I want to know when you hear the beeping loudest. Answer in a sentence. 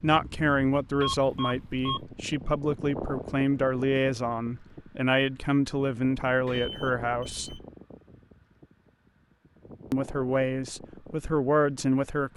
The volume of the beeping peaks at 1 second.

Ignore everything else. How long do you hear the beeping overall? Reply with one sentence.
You can hear the beeping for 2 seconds altogether.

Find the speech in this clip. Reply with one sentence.
The speech can be heard from 0.0 to 7.6 s and from 9.9 to 12.3 s.